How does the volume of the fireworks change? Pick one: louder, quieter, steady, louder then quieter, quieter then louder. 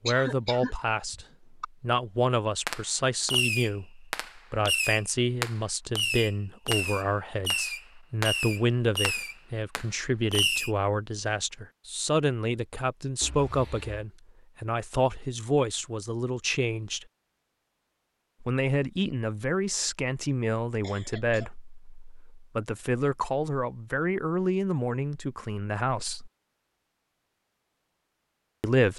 steady.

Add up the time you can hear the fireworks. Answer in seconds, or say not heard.
8 s.